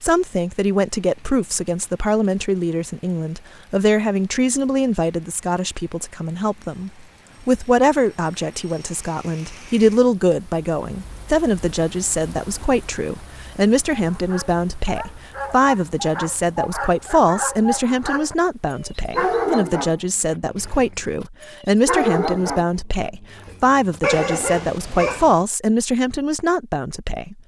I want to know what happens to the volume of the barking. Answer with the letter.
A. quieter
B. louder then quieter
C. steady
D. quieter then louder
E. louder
E.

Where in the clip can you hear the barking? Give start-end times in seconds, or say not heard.
13.9-25.4.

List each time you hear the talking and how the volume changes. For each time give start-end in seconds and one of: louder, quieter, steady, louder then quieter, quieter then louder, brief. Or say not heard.
0.0-27.4 steady.